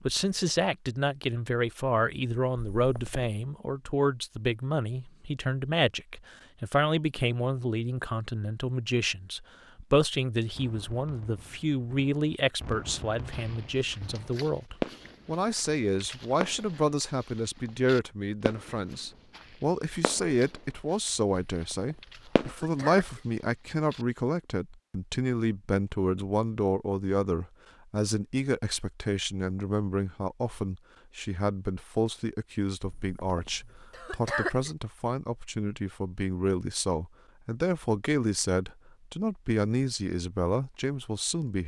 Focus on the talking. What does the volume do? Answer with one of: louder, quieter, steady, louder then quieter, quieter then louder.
steady.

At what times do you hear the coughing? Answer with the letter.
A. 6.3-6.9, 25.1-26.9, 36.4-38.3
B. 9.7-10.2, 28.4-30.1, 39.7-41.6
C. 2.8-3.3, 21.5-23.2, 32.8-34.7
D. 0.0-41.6
C.